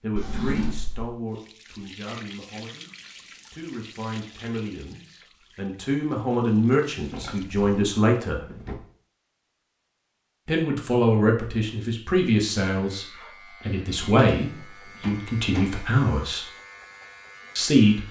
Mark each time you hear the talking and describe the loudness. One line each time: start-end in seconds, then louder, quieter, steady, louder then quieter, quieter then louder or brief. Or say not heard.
0.0-8.4 quieter then louder
10.4-16.4 quieter then louder
17.6-18.0 brief.